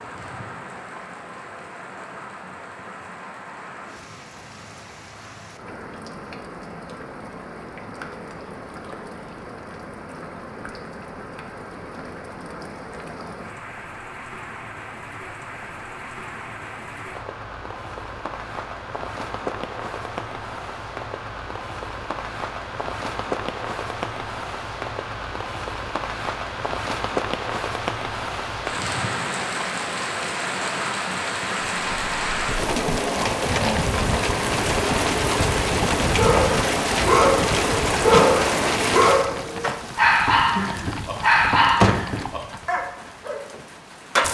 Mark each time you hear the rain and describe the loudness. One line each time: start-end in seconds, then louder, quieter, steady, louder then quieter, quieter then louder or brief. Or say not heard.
0.0-44.2 louder.